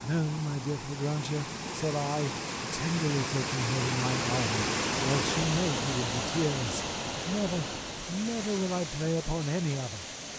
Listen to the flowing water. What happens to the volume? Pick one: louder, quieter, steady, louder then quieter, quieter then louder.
louder then quieter.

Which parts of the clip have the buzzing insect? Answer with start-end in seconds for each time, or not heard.
not heard.